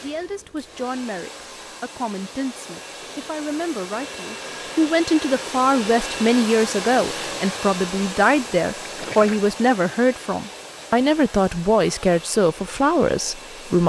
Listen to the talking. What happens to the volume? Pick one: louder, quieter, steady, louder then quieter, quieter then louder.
louder.